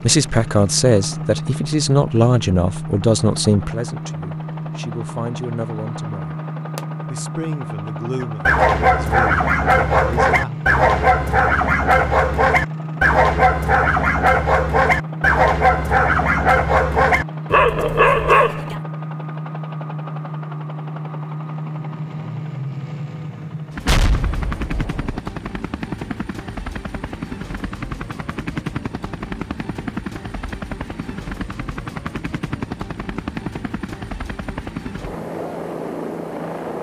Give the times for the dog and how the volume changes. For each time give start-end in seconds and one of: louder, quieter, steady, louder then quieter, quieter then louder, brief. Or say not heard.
8.2-18.8 steady.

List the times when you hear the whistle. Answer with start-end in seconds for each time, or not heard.
not heard.